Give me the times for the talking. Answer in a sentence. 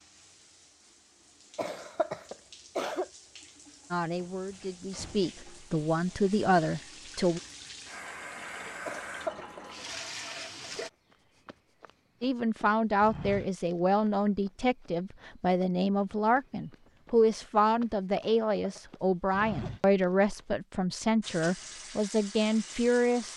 You can hear the talking from 3.9 to 7.4 s and from 12.2 to 23.3 s.